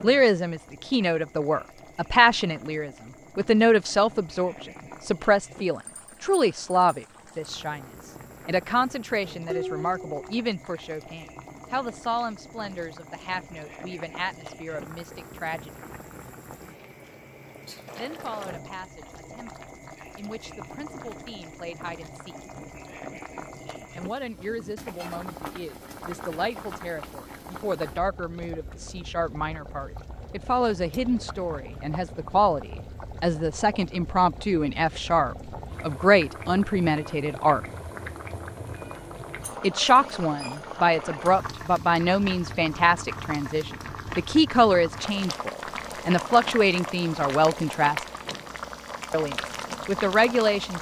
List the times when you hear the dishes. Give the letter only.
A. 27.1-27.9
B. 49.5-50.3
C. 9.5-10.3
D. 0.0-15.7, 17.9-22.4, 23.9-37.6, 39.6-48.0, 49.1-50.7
C.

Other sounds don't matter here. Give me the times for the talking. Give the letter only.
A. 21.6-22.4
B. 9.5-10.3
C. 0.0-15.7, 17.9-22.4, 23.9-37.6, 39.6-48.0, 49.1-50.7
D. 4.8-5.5
C.